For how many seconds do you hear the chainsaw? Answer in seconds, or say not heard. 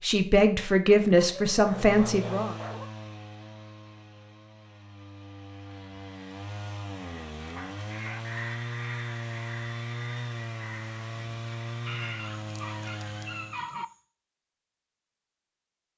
12 s.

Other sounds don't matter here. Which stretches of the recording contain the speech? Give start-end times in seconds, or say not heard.
0.0-2.5.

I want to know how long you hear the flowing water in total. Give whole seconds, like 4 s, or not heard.
not heard.